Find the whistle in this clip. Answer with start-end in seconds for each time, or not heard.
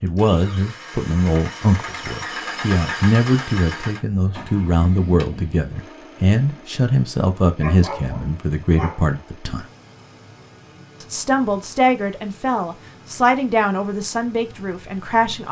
not heard.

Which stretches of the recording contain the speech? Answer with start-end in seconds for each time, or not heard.
0.0-9.7, 11.0-15.4.